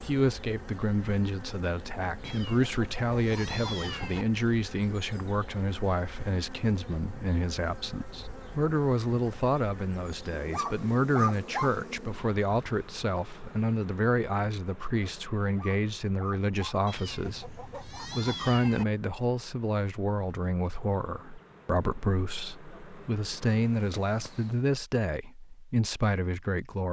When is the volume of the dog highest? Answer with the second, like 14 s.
11 s.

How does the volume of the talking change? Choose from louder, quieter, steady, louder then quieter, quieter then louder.
steady.